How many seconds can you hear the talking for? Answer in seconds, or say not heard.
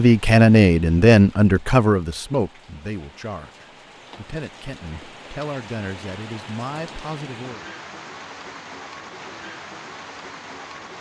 8 s.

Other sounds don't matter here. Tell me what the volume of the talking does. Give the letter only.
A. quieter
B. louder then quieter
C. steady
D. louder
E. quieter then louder
A.